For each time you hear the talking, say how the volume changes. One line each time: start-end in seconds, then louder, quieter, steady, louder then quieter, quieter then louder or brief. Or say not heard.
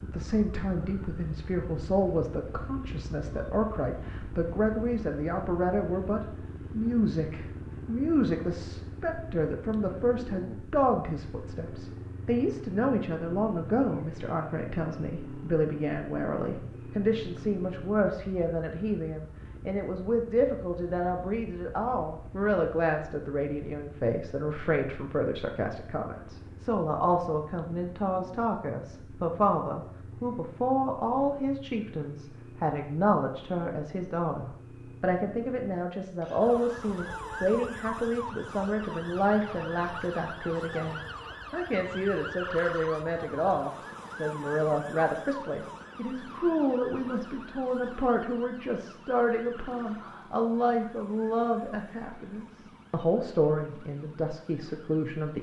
0.0-55.3 steady.